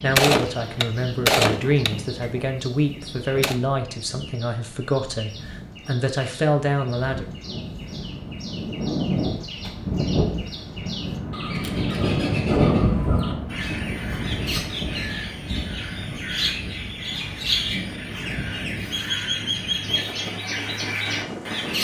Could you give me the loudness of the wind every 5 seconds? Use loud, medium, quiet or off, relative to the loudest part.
quiet, medium, loud, medium, medium.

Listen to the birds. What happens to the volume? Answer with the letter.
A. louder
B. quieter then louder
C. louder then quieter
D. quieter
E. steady
A.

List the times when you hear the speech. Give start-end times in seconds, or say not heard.
0.0-7.2.